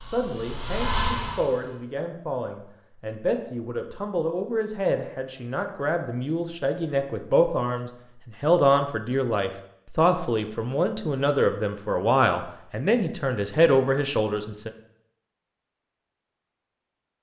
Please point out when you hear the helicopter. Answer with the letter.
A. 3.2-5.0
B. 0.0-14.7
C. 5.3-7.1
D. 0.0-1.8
D.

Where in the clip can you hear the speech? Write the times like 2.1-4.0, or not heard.
0.0-14.7.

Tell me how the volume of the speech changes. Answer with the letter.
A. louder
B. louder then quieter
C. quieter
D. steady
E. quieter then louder
A.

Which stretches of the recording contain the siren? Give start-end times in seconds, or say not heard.
not heard.